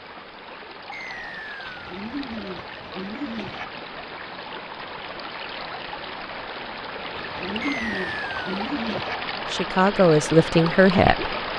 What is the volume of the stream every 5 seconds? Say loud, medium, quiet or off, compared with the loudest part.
medium, loud, loud.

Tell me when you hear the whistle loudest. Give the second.
8 s.